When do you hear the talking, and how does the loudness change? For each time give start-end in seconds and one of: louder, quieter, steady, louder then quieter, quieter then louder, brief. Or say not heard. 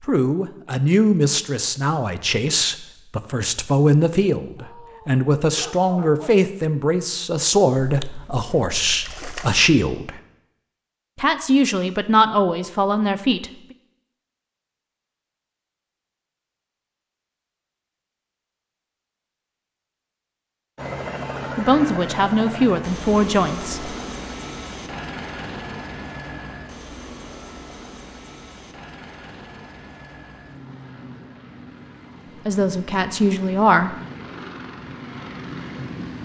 0.1-10.2 steady
11.2-13.5 brief
21.6-23.9 brief
32.5-34.0 brief.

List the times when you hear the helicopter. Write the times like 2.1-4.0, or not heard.
20.8-36.2.